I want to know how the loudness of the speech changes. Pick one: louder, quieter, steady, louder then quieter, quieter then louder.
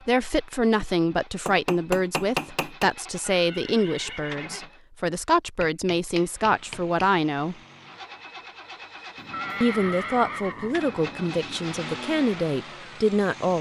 steady.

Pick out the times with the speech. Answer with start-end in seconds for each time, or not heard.
0.1-7.5, 9.6-13.5.